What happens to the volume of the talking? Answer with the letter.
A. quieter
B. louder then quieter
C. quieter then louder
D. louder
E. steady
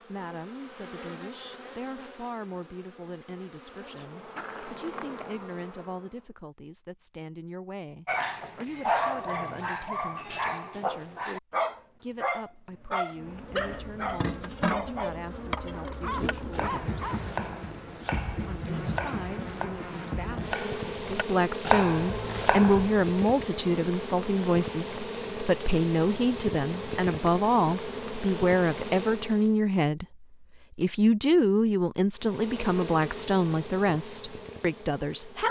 D.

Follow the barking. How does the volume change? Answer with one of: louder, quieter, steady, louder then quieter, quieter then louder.
quieter.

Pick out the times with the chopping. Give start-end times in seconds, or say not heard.
15.9-22.9.